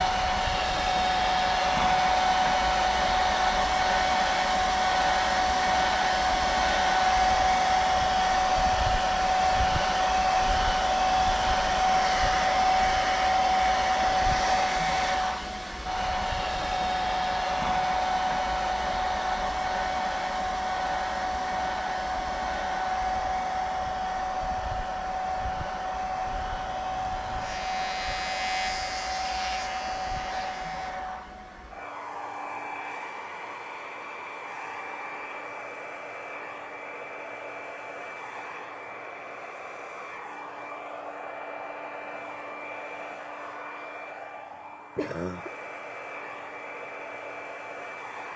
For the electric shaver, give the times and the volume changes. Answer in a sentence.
The electric shaver can be heard from 25.9 to 30.9 s, getting louder then quieter.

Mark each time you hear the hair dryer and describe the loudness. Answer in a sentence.
The hair dryer can be heard from 0.0 to 48.3 s, getting quieter.